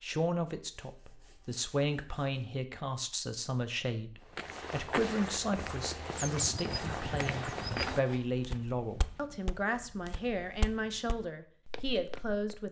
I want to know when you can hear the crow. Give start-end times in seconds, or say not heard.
not heard.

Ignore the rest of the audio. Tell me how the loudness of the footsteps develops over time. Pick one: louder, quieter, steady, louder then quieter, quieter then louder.
quieter.